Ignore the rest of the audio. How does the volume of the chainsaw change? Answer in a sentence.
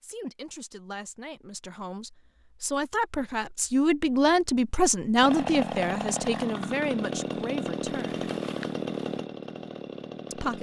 The loudness of the chainsaw goes down.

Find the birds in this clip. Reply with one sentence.
The birds can't be heard in this clip.